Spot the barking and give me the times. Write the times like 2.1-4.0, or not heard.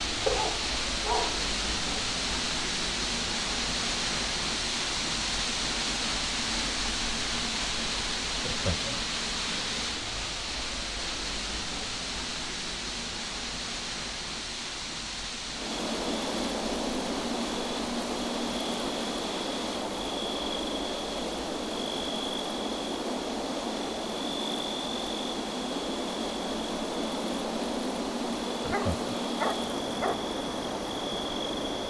0.2-1.5, 28.7-30.1.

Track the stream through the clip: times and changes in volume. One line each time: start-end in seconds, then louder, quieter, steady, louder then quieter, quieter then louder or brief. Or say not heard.
0.0-31.8 quieter.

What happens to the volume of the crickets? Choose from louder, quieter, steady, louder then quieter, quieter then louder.
steady.